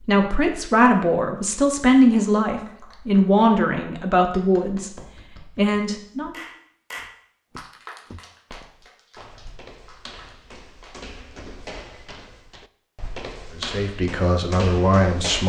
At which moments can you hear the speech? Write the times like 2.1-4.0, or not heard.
0.0-6.4, 13.6-15.4.